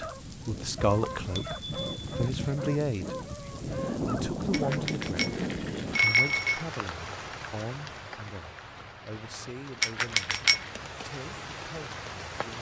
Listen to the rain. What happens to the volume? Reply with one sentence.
The volume of the rain goes up, then down.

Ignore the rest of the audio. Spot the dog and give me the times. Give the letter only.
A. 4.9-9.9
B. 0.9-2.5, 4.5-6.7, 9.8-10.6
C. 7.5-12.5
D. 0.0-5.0
D.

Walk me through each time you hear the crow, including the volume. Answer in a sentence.
The crow can't be heard in this clip.